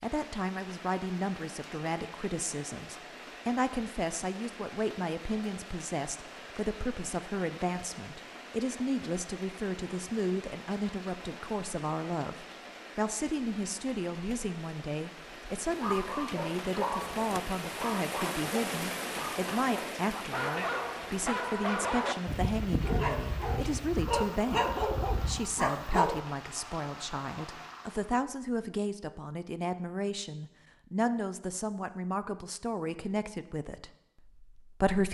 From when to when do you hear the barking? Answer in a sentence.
You can hear the barking from 15.8 to 26.2 s.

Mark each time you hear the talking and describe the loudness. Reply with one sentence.
You can hear the talking from 0.0 to 35.0 s, at a steady volume.